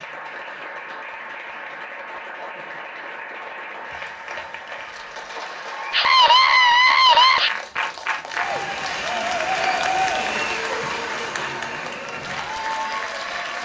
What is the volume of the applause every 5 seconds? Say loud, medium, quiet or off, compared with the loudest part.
medium, loud, loud.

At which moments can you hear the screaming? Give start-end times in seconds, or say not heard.
5.9-7.5.